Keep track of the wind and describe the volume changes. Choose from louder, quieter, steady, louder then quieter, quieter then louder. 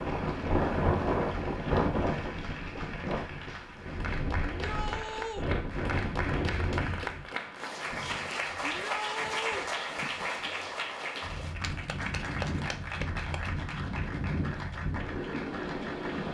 quieter then louder.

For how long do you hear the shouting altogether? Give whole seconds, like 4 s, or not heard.
2 s.